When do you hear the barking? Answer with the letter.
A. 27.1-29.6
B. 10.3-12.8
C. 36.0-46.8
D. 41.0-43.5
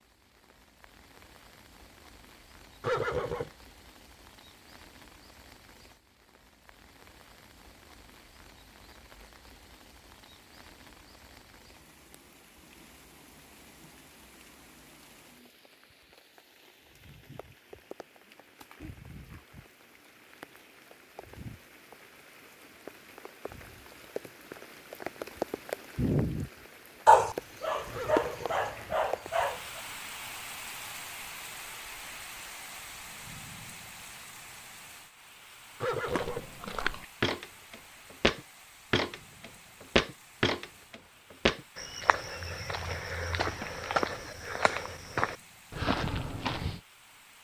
A.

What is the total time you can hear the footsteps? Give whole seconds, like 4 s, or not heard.
11 s.